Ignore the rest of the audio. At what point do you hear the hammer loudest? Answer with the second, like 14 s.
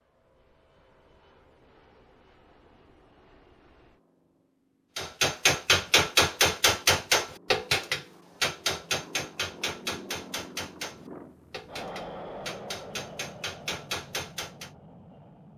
6 s.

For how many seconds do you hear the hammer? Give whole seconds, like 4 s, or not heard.
10 s.